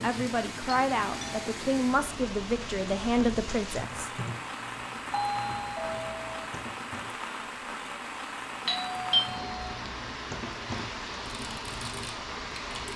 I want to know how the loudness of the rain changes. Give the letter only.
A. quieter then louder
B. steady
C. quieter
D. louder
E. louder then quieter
B.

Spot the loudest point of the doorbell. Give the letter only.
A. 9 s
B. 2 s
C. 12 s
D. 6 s
A.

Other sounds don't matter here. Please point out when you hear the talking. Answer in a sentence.
The talking can be heard from 0.0 to 4.1 s.